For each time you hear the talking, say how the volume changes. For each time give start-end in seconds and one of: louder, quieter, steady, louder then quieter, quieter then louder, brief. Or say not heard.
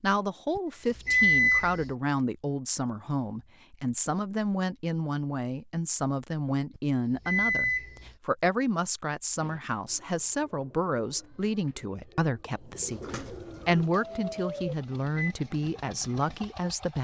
0.0-16.9 steady.